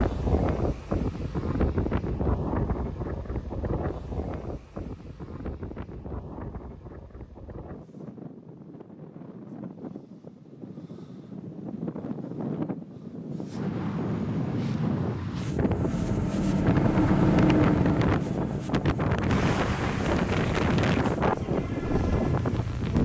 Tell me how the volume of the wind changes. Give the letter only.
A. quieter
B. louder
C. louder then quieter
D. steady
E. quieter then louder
E.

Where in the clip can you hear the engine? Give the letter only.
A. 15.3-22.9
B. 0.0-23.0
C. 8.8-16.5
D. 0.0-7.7
A.